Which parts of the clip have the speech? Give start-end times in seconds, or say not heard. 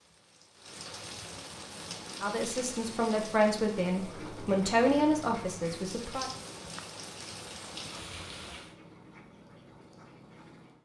2.2-6.2.